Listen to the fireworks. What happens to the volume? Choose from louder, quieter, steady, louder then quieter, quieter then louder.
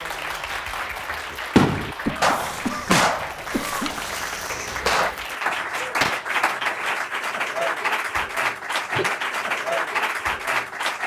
quieter then louder.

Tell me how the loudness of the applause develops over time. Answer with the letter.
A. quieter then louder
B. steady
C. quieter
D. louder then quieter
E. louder
E.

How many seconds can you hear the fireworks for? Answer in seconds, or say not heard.
5 s.